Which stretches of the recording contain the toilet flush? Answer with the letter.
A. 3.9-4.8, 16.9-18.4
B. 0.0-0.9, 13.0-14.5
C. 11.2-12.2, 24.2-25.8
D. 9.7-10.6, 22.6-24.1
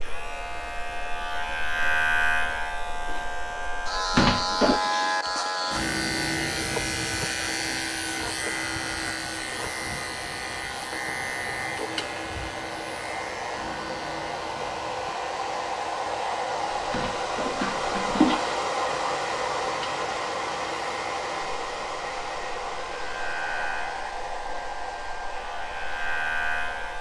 A.